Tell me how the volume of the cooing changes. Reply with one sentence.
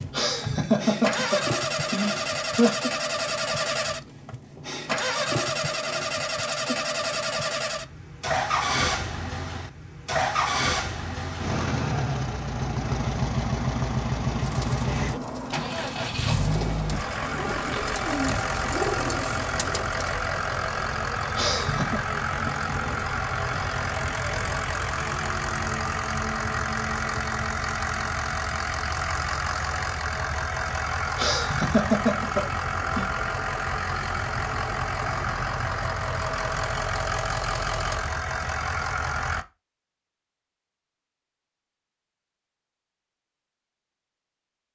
The volume of the cooing goes up.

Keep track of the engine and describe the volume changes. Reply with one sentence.
The volume of the engine stays about the same.